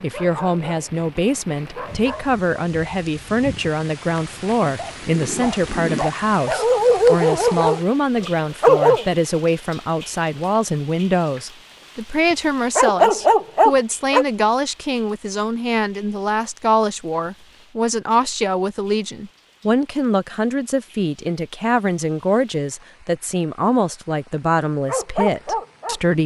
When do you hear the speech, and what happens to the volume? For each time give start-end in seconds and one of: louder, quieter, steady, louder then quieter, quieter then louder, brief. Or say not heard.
0.0-26.2 steady.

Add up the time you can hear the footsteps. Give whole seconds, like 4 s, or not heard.
not heard.